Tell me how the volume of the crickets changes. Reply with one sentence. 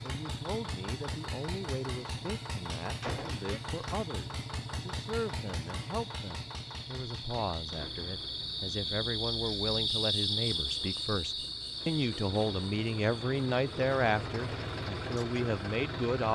The volume of the crickets goes up, then down.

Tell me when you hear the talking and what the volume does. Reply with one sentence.
The talking can be heard from 0.0 to 16.3 s, getting louder.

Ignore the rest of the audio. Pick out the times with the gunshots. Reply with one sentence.
You can hear the gunshots from 3.0 to 3.5 s.